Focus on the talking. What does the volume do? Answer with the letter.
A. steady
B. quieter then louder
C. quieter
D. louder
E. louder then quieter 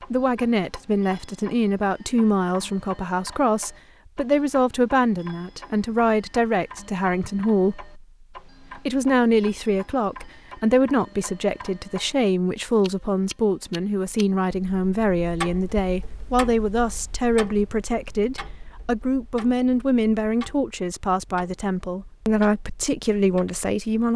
A.